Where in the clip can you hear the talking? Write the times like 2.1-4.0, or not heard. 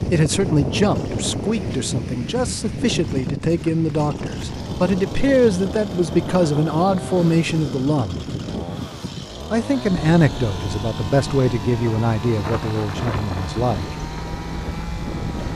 0.1-8.3, 9.5-13.9.